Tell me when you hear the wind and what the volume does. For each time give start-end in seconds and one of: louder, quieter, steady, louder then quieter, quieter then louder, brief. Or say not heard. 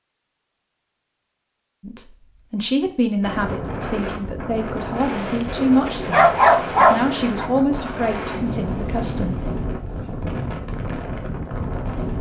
3.2-12.1 steady.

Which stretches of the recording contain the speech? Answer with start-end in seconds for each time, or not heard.
1.8-9.4.